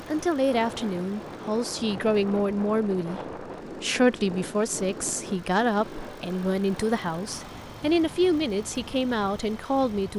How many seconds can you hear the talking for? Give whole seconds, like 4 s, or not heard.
10 s.